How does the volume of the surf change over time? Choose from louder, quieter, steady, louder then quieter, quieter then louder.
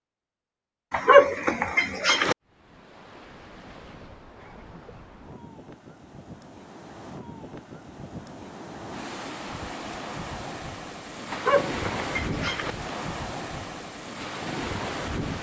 louder.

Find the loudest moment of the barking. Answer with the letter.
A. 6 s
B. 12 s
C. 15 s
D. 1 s
D.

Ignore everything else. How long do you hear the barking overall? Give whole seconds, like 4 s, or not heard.
3 s.